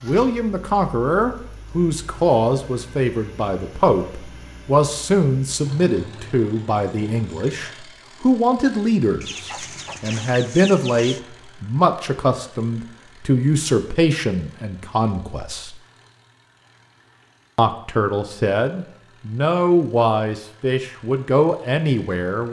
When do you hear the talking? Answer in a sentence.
You can hear the talking from 0.0 to 15.8 s and from 17.6 to 22.4 s.